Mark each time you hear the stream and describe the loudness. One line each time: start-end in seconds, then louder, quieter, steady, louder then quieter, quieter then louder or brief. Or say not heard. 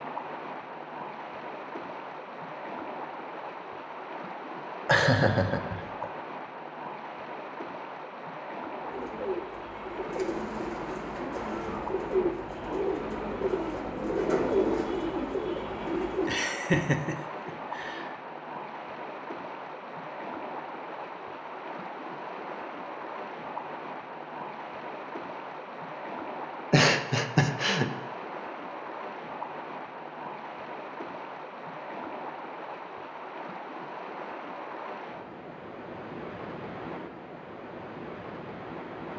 0.0-39.1 steady.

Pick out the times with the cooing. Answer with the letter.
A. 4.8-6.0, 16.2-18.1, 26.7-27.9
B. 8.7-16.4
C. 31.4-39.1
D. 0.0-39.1
B.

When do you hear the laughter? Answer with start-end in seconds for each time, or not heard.
4.8-6.0, 16.2-18.1, 26.7-27.9.